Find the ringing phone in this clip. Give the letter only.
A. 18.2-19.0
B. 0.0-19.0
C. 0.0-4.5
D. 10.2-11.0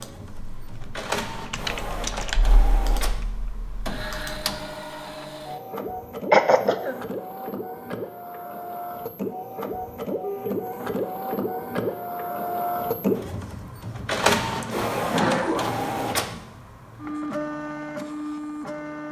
D.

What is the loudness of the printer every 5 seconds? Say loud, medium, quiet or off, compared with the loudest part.
medium, medium, loud, loud.